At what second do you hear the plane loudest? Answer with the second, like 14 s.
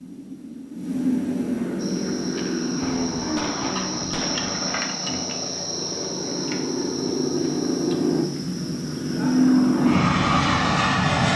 10 s.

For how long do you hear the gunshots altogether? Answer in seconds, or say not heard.
2 s.